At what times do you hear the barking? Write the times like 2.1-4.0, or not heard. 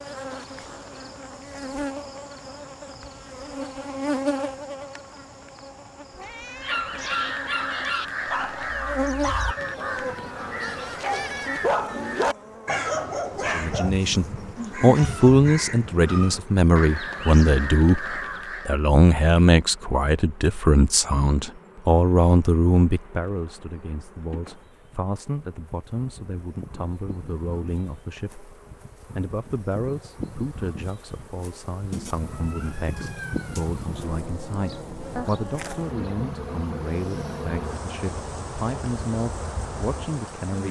6.6-13.9.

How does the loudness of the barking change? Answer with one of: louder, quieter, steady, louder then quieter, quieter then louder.
quieter then louder.